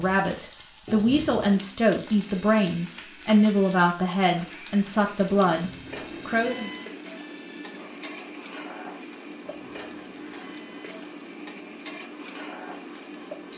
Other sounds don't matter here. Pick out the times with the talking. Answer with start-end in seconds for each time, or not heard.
0.0-6.7.